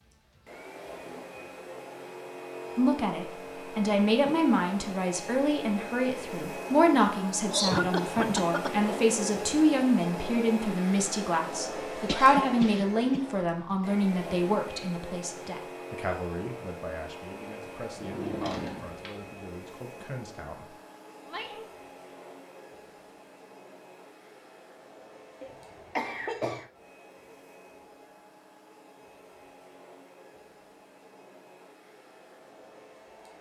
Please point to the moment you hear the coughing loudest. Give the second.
8 s.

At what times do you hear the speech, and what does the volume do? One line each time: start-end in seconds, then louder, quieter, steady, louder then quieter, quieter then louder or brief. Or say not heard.
2.8-21.6 quieter.